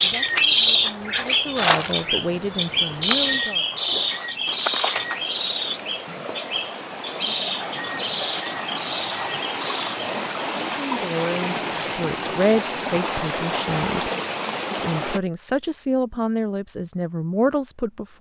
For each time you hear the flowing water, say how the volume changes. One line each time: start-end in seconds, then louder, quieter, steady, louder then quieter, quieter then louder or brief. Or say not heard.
0.0-15.2 louder.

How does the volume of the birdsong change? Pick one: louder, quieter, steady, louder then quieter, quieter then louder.
quieter.